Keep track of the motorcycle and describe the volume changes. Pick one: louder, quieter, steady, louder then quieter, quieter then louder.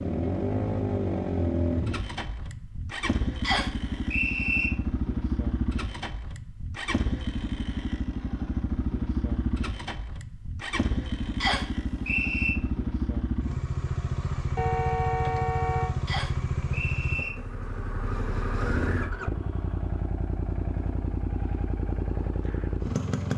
steady.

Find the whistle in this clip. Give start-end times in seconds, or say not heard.
3.4-4.7, 11.4-12.6, 16.1-17.3.